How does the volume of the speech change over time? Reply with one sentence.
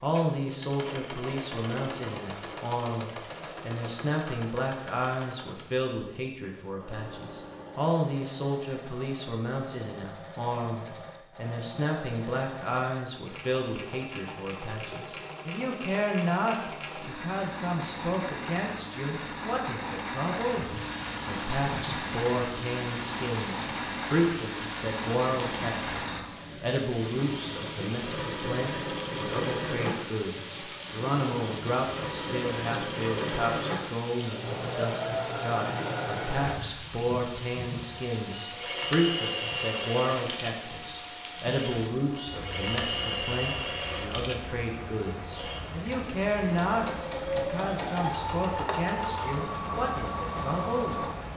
The loudness of the speech stays about the same.